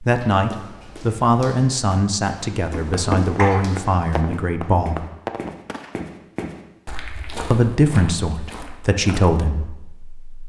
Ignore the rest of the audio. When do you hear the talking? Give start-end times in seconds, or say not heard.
0.0-5.0, 7.5-10.4.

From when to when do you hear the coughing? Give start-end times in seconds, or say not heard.
2.7-3.6.